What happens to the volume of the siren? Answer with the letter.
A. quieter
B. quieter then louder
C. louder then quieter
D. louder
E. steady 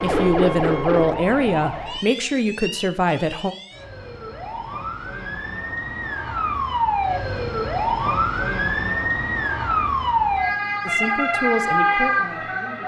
B.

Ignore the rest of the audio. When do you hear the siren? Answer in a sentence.
You can hear the siren from 0.0 to 12.8 s.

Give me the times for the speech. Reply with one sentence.
You can hear the speech from 0.0 to 3.5 s and from 10.8 to 12.8 s.